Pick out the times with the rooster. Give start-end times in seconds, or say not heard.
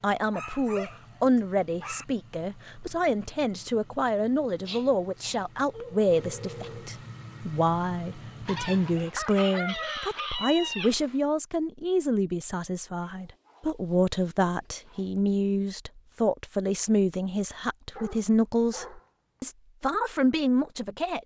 8.4-11.2.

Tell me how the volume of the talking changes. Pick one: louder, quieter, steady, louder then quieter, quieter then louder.
steady.